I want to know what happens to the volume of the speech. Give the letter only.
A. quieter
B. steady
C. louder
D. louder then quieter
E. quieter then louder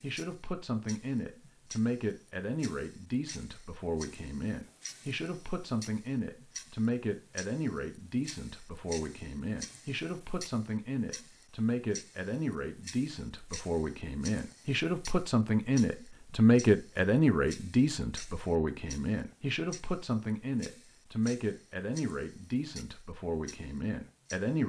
D.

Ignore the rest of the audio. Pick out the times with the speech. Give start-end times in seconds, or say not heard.
0.0-24.6.